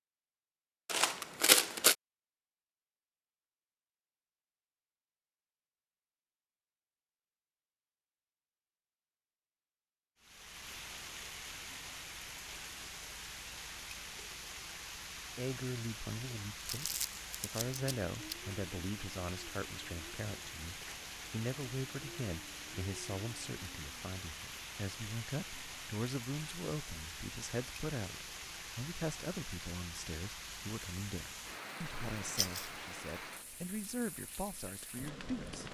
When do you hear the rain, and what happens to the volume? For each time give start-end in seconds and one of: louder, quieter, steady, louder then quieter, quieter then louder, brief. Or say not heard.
10.2-35.6 steady.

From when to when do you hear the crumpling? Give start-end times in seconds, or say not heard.
0.8-1.9, 16.6-18.6, 32.2-32.7.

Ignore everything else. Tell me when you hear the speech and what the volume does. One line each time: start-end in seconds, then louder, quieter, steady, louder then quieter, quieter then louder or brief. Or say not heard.
15.3-35.6 steady.